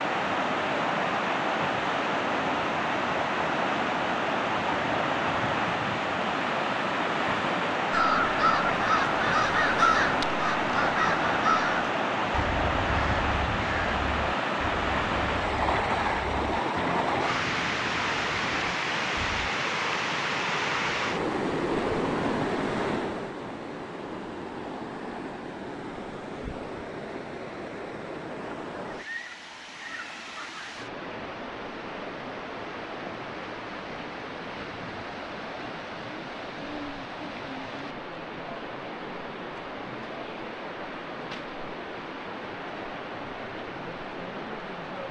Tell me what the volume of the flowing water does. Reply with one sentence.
The loudness of the flowing water goes down.